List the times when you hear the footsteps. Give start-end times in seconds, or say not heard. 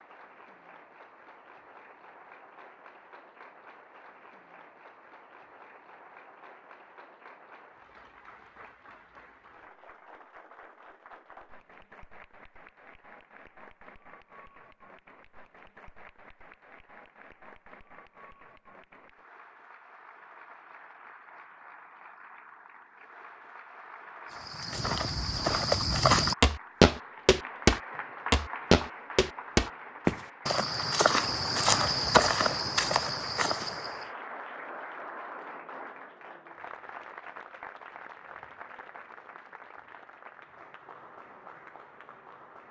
24.3-34.1.